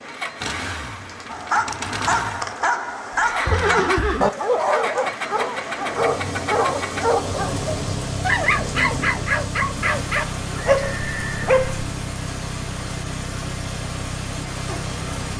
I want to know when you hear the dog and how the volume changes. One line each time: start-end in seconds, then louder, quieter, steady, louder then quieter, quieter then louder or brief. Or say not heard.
1.3-11.8 steady.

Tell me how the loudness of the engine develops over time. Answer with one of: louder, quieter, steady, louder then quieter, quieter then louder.
steady.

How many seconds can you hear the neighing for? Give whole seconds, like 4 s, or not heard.
2 s.